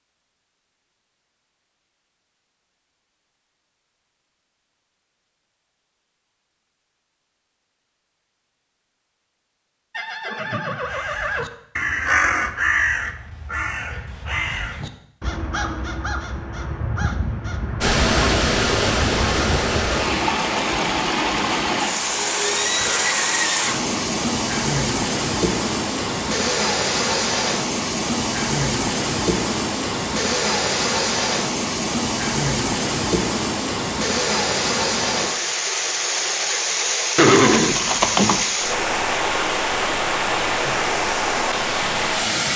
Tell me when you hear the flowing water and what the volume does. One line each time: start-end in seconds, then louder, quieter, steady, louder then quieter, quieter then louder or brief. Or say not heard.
17.8-42.5 steady.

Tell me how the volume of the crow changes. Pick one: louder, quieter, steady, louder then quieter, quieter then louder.
quieter.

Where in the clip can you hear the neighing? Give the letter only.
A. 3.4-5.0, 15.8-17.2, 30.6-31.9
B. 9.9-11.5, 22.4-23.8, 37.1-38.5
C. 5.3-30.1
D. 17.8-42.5
B.